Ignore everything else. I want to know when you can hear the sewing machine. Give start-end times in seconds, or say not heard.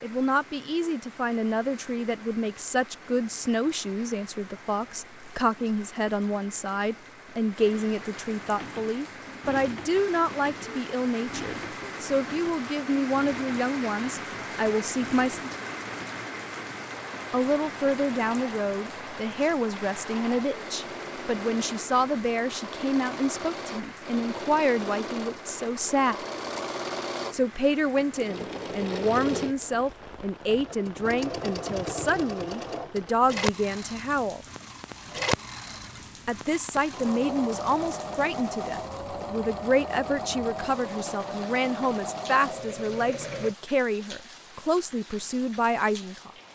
8.5-43.5.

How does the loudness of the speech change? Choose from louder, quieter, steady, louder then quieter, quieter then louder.
steady.